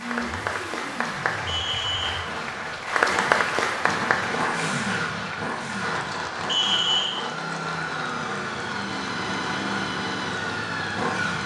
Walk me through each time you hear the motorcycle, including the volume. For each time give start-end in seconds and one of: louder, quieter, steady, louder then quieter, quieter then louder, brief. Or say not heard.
0.0-11.4 louder.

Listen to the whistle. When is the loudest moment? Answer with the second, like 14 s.
7 s.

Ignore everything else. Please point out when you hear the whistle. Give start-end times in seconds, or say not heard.
1.4-2.1, 6.5-7.2.